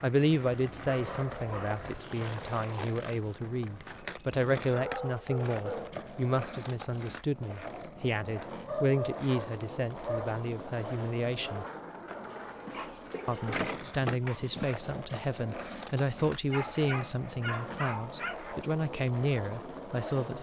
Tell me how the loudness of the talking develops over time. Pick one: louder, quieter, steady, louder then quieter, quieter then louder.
steady.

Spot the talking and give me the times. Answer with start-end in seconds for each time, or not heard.
0.0-11.7, 13.2-20.3.